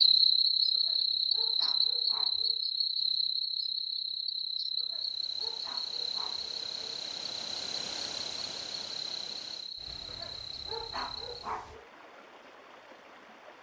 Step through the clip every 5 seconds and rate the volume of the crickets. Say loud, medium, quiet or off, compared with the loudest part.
loud, medium, quiet.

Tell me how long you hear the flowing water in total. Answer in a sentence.
You can hear the flowing water for 9 seconds altogether.